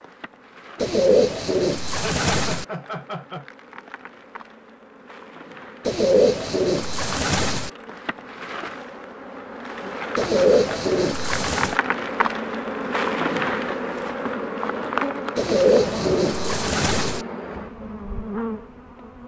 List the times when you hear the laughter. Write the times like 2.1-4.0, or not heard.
1.9-3.5.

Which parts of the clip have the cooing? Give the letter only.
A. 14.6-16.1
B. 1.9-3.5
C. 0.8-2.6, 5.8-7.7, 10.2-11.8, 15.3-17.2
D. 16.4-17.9
C.